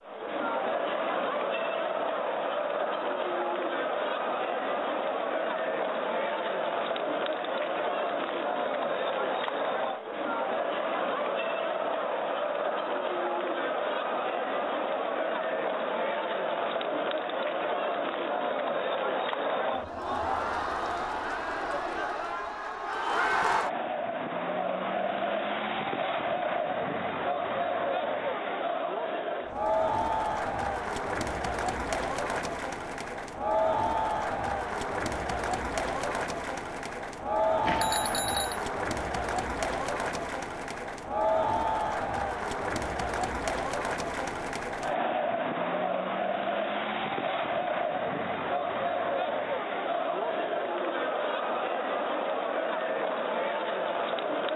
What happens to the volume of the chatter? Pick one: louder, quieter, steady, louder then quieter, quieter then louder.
steady.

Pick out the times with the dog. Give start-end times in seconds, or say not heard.
not heard.